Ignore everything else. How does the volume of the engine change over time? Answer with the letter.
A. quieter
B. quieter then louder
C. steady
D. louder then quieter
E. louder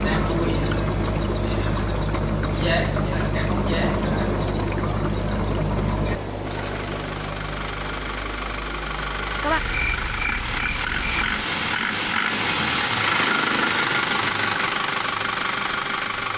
E.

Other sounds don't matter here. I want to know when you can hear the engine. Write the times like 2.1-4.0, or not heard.
6.4-16.3.